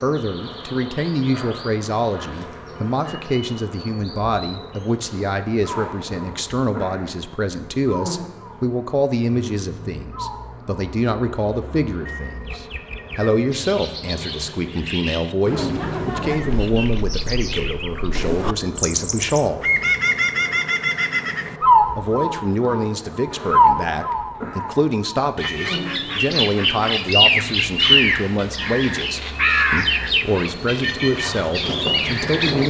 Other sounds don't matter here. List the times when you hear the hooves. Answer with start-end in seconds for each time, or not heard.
31.1-32.6.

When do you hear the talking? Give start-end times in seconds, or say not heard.
0.0-19.7, 21.9-32.6.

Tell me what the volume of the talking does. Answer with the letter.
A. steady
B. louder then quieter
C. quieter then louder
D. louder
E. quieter
A.